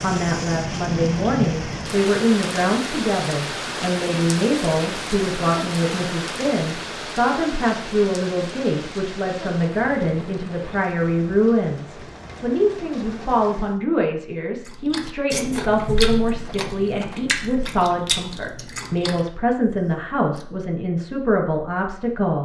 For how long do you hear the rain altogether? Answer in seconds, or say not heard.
14 s.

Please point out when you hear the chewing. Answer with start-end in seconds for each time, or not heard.
14.7-20.4.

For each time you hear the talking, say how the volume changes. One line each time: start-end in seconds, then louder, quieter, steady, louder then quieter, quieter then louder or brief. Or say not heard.
0.0-22.4 steady.